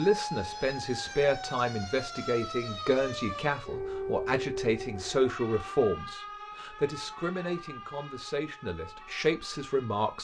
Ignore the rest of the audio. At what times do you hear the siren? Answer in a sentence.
The siren can be heard from 0.0 to 10.1 s.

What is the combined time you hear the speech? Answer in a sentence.
You can hear the speech for 10 seconds altogether.